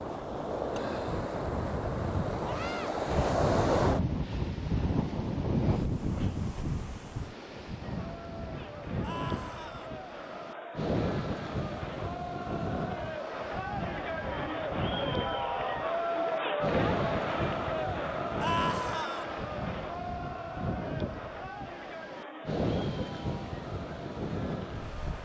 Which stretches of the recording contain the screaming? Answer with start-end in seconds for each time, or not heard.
2.4-3.0, 9.0-9.9, 18.4-19.2.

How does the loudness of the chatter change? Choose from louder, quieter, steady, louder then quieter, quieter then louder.
louder then quieter.